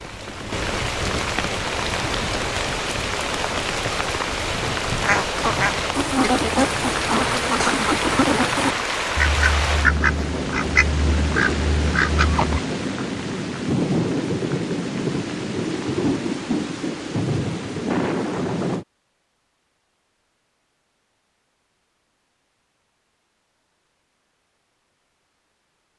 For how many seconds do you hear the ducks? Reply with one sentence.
The ducks can be heard for 8 seconds in total.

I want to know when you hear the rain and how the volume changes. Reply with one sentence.
The rain can be heard from 0.0 to 18.9 s, at a steady volume.